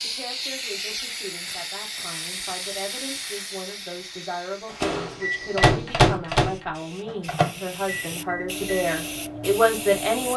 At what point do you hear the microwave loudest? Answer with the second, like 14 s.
6 s.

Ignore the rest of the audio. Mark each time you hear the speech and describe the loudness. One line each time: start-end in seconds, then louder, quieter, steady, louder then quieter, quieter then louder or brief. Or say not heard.
0.0-10.3 louder.